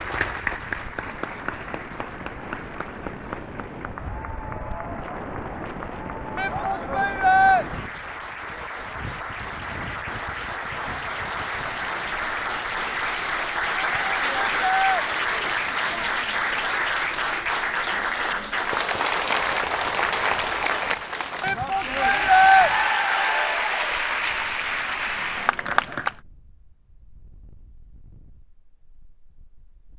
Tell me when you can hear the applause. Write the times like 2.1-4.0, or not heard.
0.0-26.1.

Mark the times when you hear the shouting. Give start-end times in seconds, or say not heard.
6.3-7.7, 13.8-15.1, 21.4-22.7.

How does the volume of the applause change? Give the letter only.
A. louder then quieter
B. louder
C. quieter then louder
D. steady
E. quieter
B.